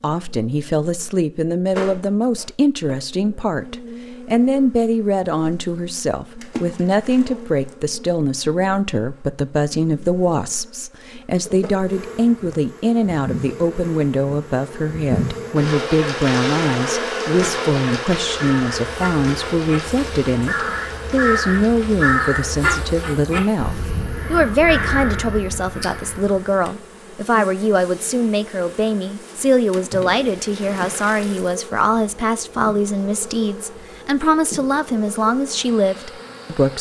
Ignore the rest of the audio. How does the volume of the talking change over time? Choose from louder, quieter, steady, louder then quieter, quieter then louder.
steady.